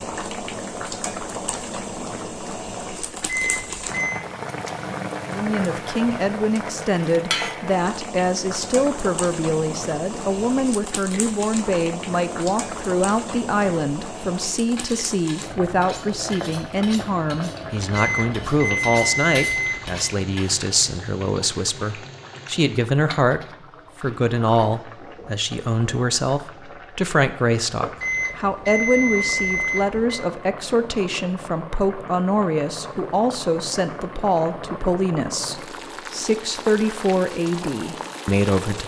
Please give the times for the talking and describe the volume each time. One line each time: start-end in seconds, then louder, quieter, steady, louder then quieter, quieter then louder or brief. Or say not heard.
5.3-38.8 steady.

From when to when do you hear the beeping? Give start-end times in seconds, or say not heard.
3.2-4.2, 17.9-19.9, 28.0-30.2.